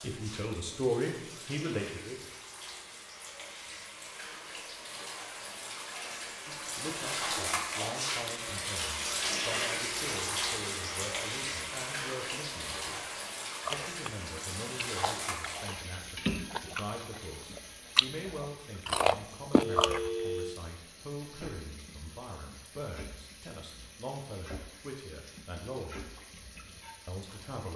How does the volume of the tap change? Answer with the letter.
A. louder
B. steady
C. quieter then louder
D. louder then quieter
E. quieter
D.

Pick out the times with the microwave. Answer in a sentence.
You can't hear the microwave here.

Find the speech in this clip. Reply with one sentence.
You can hear the speech from 0.0 to 2.3 s, from 6.5 to 13.1 s, from 13.7 to 26.0 s and from 27.1 to 27.7 s.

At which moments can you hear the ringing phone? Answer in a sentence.
You can hear the ringing phone from 19.6 to 20.6 s.